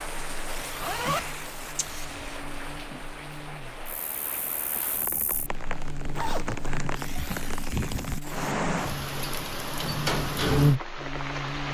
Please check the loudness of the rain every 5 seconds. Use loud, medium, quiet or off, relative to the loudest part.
medium, loud, loud.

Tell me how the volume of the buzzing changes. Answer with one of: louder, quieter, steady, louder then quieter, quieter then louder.
louder.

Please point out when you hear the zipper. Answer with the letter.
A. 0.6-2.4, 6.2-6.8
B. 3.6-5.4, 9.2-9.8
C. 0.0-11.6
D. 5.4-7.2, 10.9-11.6
A.